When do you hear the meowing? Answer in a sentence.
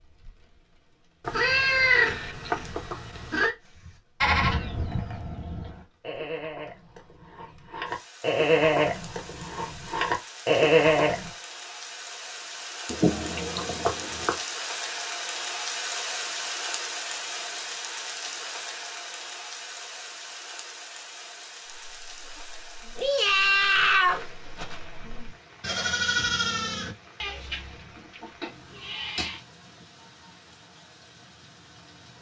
You can hear the meowing from 1.2 to 3.5 s, from 12.9 to 14.3 s and from 22.9 to 24.8 s.